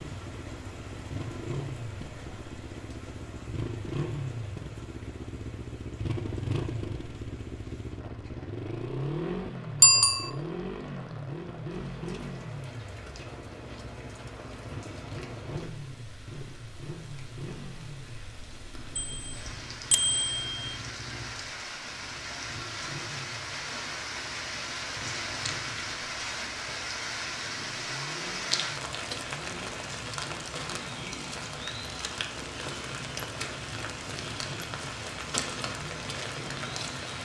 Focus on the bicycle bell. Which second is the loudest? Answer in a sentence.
The volume of the bicycle bell peaks at 10 seconds.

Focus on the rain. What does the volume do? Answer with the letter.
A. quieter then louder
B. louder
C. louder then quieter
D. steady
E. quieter
B.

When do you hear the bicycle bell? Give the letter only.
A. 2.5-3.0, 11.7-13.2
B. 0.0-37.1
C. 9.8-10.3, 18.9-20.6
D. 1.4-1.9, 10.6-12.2
C.